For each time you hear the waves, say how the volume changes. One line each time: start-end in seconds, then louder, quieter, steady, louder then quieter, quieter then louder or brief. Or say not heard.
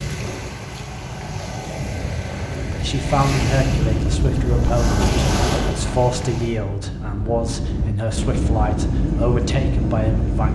0.0-6.6 louder.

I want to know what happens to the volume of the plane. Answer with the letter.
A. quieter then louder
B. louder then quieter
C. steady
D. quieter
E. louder
A.